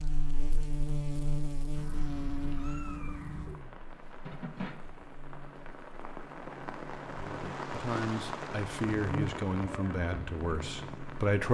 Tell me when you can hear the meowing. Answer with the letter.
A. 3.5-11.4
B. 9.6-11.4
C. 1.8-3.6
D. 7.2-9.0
C.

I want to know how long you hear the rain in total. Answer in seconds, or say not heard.
8 s.